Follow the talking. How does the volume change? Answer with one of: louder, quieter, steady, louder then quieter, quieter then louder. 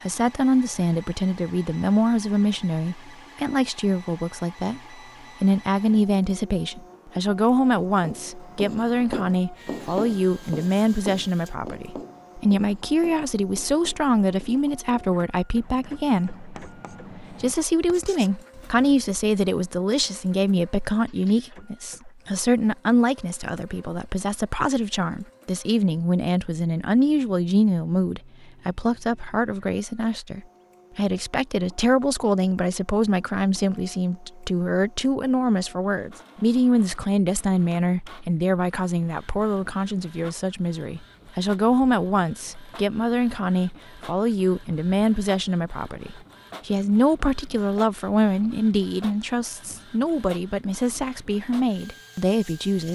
steady.